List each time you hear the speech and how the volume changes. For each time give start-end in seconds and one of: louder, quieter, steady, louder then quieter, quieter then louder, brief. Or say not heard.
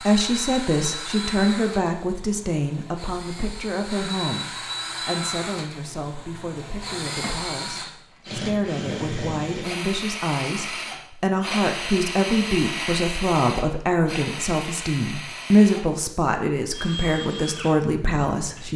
0.0-18.7 quieter then louder.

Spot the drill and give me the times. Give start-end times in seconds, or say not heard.
0.0-18.7.